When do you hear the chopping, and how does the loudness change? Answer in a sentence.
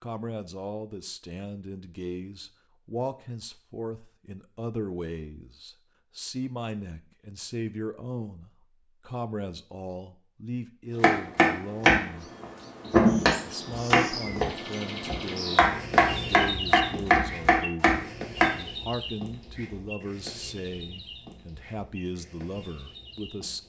You can hear the chopping from 11.0 to 18.5 s, getting quieter then louder.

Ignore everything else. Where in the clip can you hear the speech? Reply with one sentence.
You can hear the speech from 0.0 to 12.3 s and from 13.4 to 23.6 s.